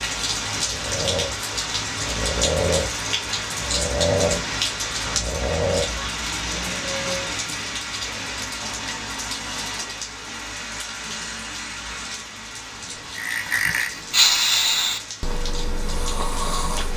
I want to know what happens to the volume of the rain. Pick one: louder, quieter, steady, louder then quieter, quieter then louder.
quieter.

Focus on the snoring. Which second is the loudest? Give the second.
14 s.